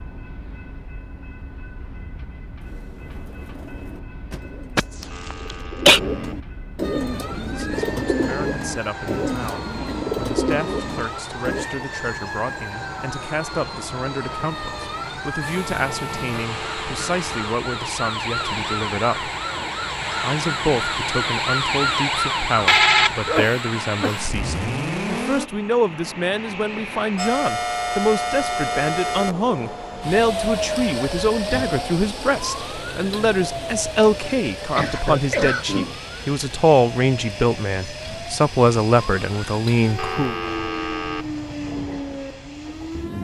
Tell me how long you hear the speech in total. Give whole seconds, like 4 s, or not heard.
32 s.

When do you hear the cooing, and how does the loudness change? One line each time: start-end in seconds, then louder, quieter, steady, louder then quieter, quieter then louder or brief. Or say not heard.
2.6-11.7 louder.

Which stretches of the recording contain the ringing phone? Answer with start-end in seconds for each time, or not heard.
5.1-6.3, 16.4-17.4, 40.0-41.2.